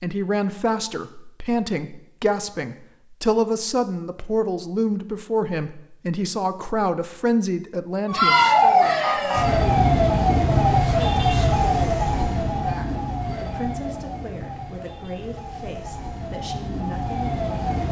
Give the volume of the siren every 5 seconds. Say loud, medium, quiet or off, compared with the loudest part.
off, loud, medium, quiet.